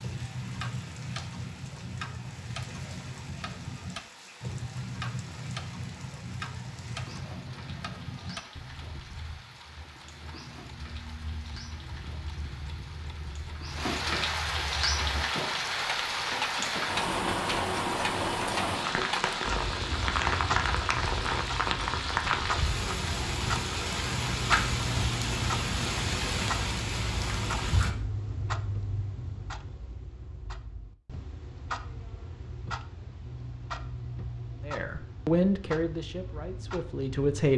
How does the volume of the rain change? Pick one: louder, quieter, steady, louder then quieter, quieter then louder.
louder.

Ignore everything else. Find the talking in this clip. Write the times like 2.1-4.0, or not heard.
34.6-37.5.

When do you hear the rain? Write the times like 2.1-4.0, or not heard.
0.0-27.9.